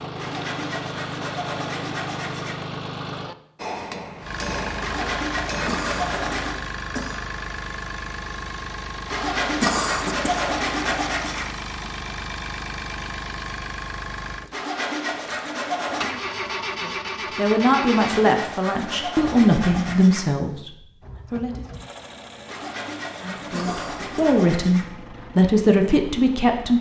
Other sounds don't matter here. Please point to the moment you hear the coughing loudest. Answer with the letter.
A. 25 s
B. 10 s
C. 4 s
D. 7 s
B.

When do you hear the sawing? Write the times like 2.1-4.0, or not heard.
0.1-2.6, 4.8-6.6, 9.1-11.5, 14.5-16.1, 17.9-20.3, 22.4-24.9.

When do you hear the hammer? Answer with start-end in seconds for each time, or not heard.
3.5-6.1.